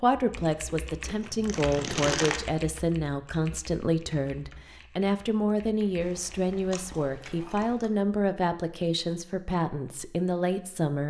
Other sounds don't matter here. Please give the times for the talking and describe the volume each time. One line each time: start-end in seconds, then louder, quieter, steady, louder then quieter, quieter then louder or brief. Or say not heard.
0.0-11.0 steady.